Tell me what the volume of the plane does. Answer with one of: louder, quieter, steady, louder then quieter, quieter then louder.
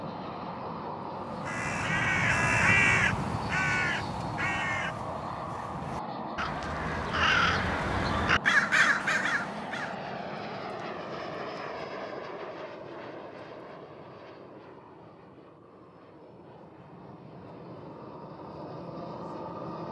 quieter.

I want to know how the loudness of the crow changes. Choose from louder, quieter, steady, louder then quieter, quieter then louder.
quieter then louder.